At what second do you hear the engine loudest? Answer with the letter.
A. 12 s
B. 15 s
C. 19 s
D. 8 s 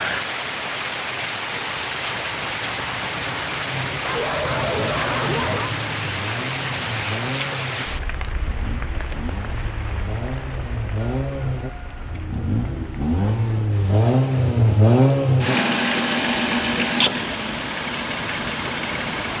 B.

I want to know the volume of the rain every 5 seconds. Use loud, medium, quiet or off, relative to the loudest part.
loud, loud, quiet, medium.